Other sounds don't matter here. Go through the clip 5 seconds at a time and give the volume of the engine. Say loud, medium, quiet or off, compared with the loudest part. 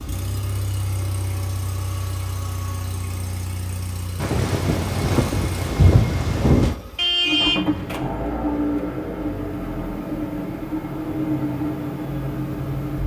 medium, loud, loud.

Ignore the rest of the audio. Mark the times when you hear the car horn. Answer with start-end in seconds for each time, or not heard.
7.0-7.7.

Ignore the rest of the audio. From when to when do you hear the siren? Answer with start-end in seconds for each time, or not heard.
not heard.